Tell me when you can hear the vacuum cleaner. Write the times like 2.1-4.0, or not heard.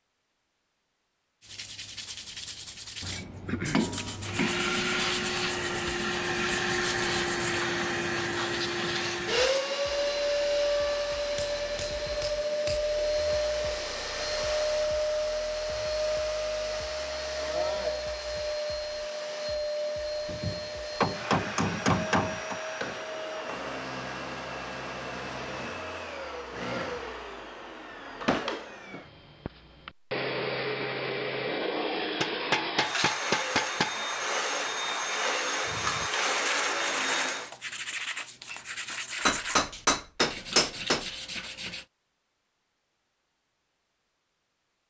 4.2-37.5.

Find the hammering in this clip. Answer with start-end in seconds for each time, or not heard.
3.0-4.5, 11.3-12.8, 20.2-22.6, 32.2-33.9, 39.2-41.1.